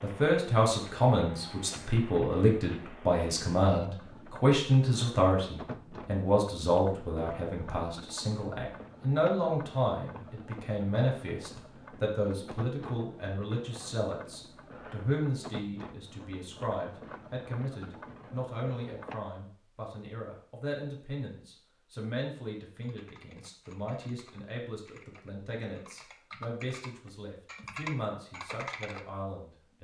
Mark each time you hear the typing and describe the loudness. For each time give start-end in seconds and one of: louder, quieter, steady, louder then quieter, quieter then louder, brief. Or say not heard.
22.8-29.1 louder.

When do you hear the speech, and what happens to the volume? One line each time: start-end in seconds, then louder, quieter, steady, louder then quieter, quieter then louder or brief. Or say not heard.
0.0-29.7 quieter.